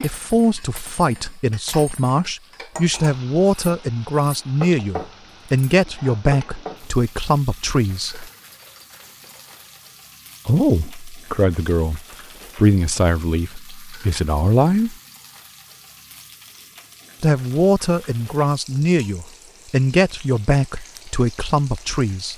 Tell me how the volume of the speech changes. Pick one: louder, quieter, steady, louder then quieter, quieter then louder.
steady.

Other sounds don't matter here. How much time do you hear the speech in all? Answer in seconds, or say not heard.
18 s.